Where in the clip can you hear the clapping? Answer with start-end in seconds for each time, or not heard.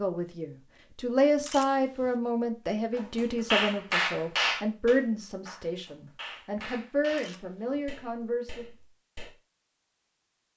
3.0-9.3.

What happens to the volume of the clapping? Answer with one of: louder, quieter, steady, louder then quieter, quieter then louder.
quieter.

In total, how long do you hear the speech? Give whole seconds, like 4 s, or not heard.
9 s.